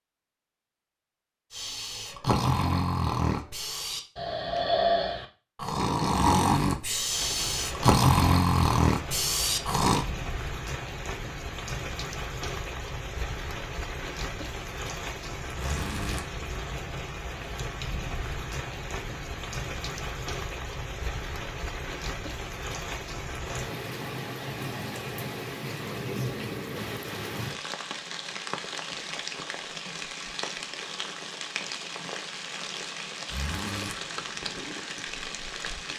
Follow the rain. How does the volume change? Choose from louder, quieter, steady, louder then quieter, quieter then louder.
steady.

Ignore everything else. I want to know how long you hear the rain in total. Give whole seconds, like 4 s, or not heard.
29 s.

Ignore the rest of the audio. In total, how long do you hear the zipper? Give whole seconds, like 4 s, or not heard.
2 s.